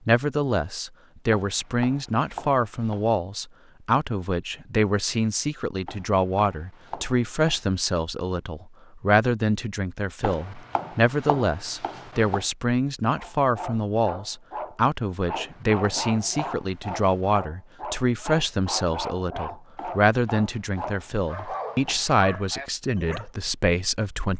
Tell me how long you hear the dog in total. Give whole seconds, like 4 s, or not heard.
10 s.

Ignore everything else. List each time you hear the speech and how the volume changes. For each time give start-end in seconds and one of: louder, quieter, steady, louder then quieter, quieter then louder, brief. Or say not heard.
0.1-24.3 steady.